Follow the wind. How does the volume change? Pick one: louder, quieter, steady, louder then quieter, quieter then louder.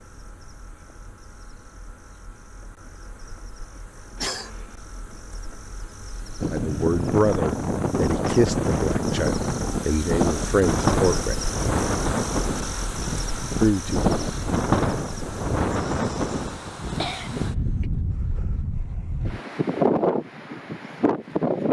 steady.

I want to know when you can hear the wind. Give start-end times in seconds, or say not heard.
6.4-21.6.